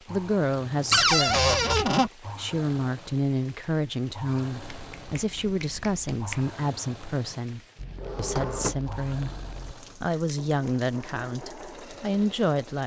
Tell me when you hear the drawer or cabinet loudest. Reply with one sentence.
The volume of the drawer or cabinet peaks at 1 second.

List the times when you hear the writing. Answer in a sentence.
The writing can't be heard in this clip.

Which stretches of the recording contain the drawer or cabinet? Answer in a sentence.
You can hear the drawer or cabinet from 0.9 to 2.1 s and from 7.8 to 9.8 s.